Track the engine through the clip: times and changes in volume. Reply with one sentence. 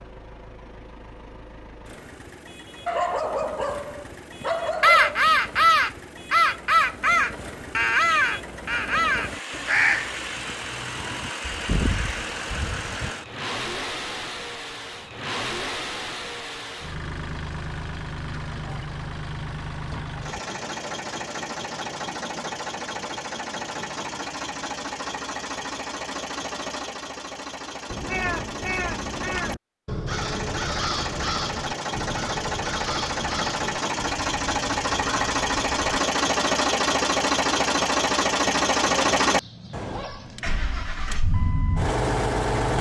The engine can be heard from 0.0 to 42.7 s, getting louder.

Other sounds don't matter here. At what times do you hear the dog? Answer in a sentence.
The dog can be heard from 2.9 to 5.2 s and from 38.9 to 40.9 s.